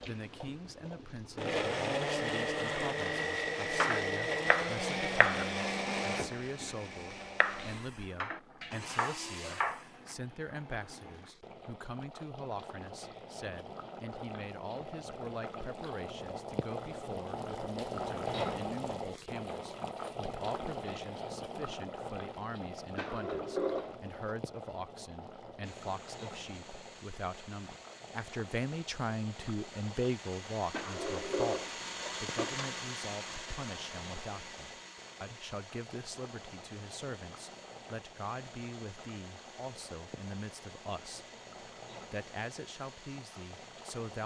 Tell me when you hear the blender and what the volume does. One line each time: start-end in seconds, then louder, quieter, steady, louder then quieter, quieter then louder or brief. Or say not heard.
0.0-10.2 quieter
25.6-44.2 louder then quieter.